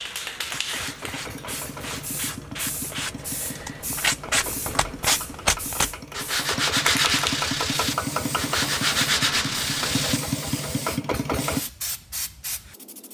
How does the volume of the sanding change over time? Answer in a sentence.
The volume of the sanding goes up.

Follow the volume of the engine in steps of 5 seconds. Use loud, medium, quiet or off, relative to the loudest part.
medium, loud, loud.